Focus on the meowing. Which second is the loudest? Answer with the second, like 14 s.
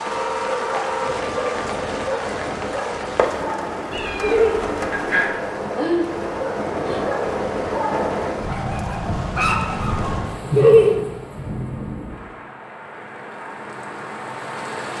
5 s.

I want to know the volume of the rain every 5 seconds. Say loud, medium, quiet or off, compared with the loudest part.
loud, loud, medium.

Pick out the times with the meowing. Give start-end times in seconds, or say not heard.
3.9-5.3.